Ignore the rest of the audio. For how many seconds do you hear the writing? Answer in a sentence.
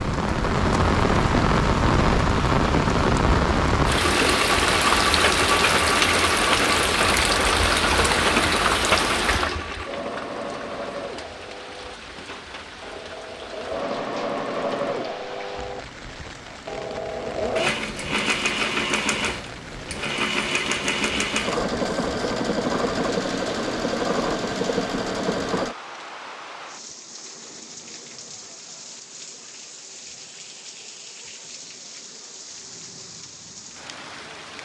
The writing can't be heard in this clip.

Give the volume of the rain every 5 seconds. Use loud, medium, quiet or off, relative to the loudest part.
loud, loud, quiet, quiet, quiet, quiet, quiet.